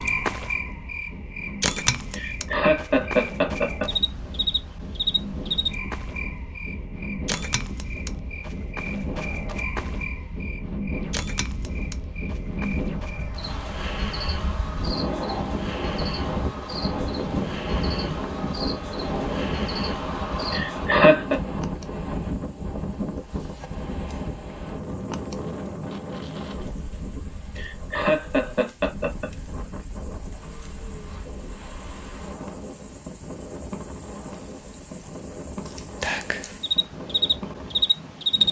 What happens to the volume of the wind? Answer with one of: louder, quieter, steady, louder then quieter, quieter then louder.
louder then quieter.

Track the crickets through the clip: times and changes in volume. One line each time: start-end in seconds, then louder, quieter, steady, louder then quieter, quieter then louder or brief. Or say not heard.
0.0-38.4 quieter then louder.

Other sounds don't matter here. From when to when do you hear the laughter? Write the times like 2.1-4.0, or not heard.
2.1-3.9, 20.5-21.4, 27.6-29.3.